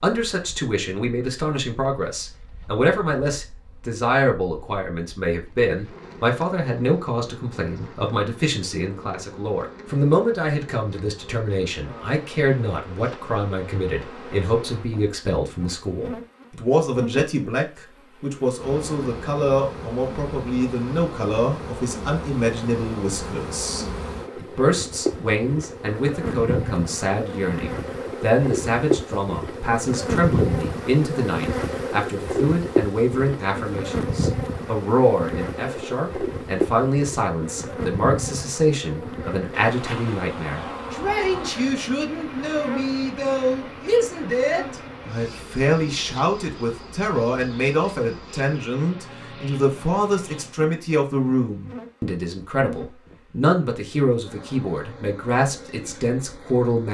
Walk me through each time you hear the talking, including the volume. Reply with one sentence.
You can hear the talking from 0.0 to 56.8 s, at a steady volume.